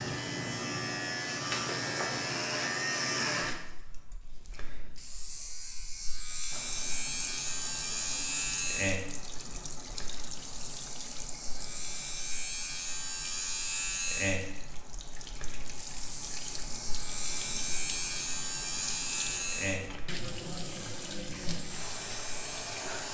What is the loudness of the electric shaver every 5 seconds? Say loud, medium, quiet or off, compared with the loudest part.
loud, loud, loud, loud, medium.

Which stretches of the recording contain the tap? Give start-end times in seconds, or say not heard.
6.5-23.0.